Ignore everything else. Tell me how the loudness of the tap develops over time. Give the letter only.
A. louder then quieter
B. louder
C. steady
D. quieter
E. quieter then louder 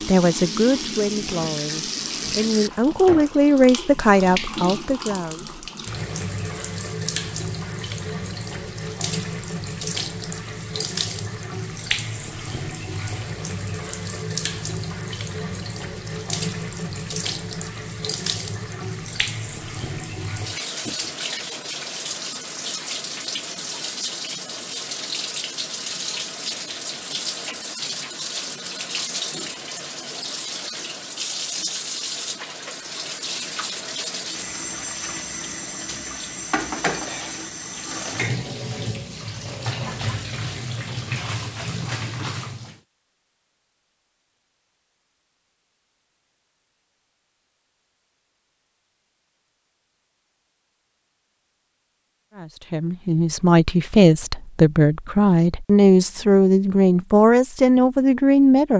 C.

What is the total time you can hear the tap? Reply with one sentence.
You can hear the tap for 43 seconds altogether.